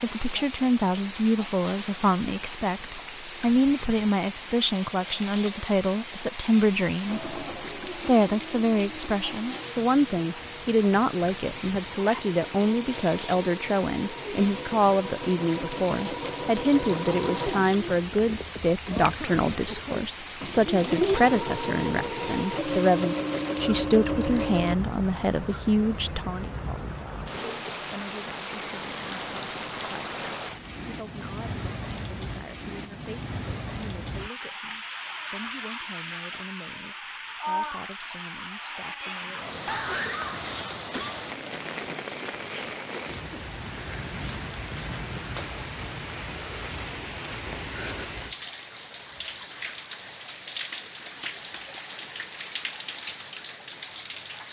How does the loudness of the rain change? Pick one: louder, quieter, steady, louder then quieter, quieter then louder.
steady.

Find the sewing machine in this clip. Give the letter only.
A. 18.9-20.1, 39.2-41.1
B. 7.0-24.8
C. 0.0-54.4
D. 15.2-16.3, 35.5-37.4
B.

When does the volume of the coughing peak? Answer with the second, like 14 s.
40 s.